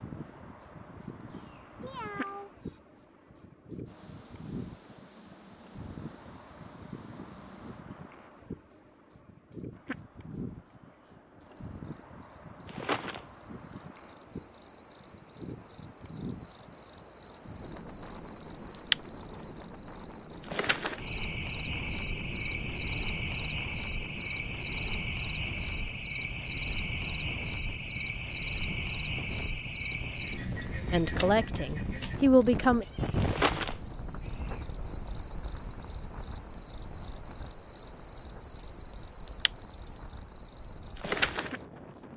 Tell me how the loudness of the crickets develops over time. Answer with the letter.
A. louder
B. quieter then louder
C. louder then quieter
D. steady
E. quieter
A.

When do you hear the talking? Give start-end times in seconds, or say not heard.
30.9-32.9.